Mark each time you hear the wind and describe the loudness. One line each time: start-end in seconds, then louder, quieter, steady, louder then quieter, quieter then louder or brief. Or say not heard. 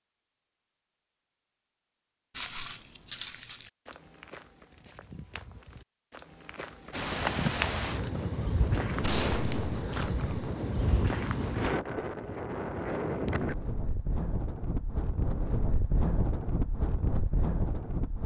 6.9-18.2 steady.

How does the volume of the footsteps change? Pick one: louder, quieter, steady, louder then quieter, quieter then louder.
quieter then louder.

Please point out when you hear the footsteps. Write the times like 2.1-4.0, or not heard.
2.4-11.8.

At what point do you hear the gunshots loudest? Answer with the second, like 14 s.
9 s.